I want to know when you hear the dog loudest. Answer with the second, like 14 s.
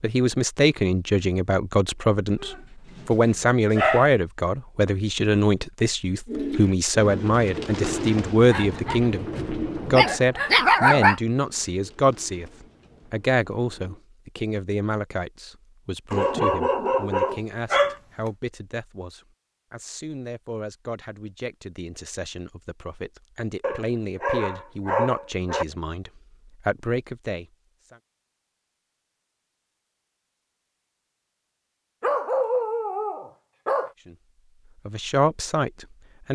11 s.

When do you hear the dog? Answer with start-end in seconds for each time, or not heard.
2.4-4.1, 8.5-9.0, 9.9-11.2, 16.1-17.9, 23.6-25.6, 32.0-33.9.